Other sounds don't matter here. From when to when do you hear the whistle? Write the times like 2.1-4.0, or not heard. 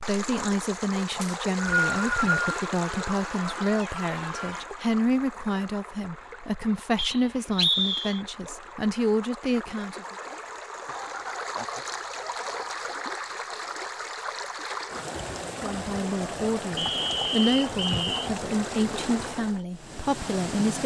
1.2-2.5, 7.0-8.2, 16.8-18.3.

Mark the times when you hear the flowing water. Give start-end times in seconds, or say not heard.
0.0-20.8.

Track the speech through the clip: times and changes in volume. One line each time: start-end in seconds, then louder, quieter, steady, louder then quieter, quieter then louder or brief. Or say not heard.
0.0-10.2 steady
15.6-20.8 louder then quieter.